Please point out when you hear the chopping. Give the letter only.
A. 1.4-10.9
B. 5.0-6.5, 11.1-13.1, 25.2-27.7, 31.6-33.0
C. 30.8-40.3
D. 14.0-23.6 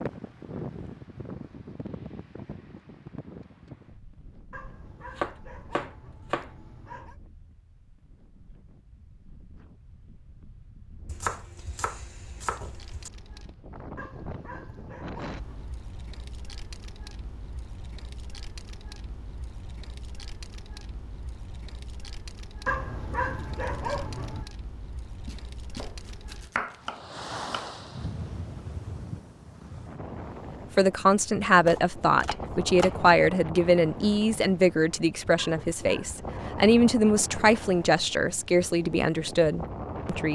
B.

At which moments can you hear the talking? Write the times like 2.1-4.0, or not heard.
30.8-40.3.